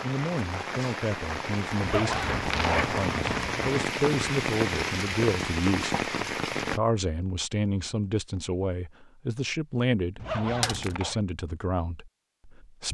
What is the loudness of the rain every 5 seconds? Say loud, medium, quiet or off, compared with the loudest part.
loud, loud, off.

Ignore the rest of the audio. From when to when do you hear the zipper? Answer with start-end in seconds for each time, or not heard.
1.8-3.8, 10.2-11.2.